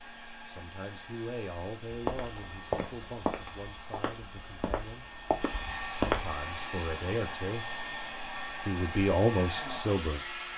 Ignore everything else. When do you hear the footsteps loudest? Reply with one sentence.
The loudest moment of the footsteps is at 6 seconds.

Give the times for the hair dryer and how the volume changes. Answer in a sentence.
You can hear the hair dryer from 0.0 to 10.5 s, getting louder.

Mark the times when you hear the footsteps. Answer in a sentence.
You can hear the footsteps from 1.9 to 6.3 s.